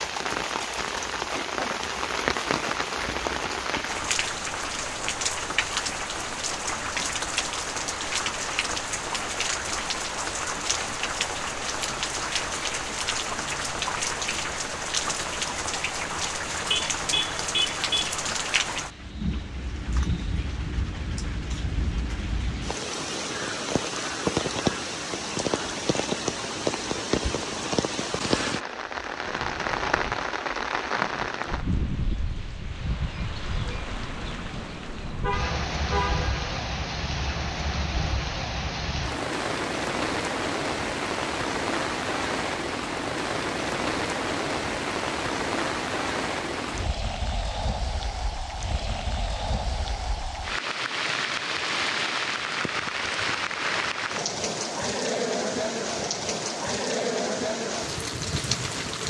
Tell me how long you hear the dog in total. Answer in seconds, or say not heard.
not heard.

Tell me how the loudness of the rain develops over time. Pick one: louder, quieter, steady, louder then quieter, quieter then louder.
steady.